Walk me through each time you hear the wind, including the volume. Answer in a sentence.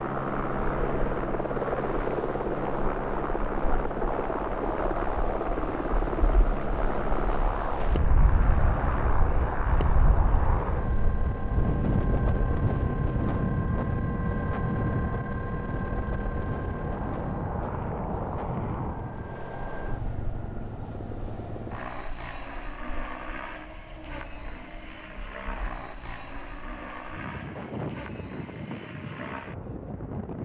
The wind can be heard from 0.0 to 30.4 s, getting louder then quieter.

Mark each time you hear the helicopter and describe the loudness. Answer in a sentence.
The helicopter can be heard from 0.0 to 30.4 s, getting quieter.